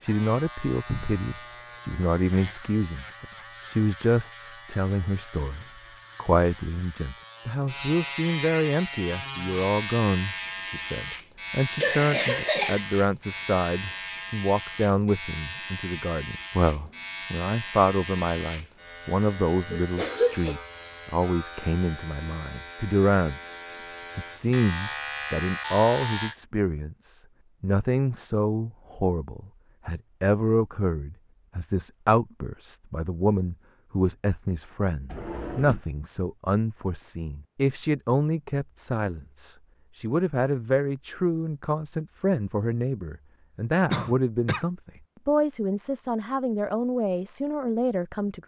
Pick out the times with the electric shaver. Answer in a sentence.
You can hear the electric shaver from 0.0 to 26.4 s.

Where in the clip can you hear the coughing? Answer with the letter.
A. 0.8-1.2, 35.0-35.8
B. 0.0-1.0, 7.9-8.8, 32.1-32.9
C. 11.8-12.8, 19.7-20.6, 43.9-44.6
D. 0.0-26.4
C.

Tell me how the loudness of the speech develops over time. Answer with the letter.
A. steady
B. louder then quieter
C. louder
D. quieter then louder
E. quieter
A.